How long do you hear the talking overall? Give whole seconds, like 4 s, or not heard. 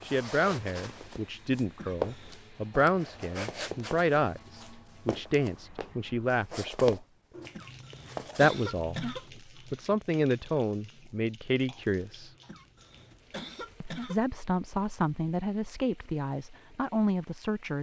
15 s.